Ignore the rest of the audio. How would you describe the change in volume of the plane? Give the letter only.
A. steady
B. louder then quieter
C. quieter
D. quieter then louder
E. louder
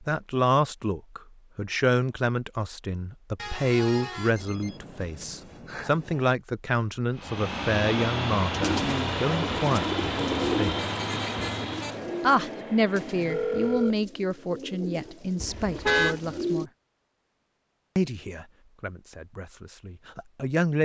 C.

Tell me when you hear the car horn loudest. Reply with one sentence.
The loudest moment of the car horn is at 16 seconds.